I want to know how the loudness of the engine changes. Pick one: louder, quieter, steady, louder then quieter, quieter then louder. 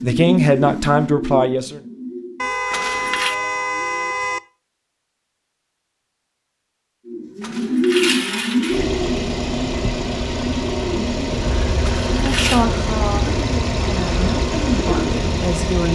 steady.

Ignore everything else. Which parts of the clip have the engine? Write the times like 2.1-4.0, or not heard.
8.7-15.9.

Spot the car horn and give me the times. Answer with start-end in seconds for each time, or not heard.
2.4-4.4.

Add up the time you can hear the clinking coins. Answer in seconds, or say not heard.
3 s.